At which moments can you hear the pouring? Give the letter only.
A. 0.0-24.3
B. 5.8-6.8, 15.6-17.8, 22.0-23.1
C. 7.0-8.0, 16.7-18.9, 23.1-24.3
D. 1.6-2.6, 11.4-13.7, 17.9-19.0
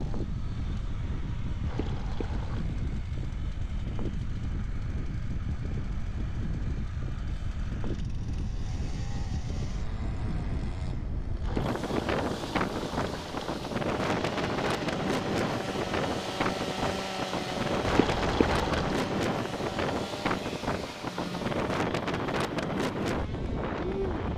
D.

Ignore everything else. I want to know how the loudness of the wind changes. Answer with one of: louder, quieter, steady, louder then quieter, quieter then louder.
louder.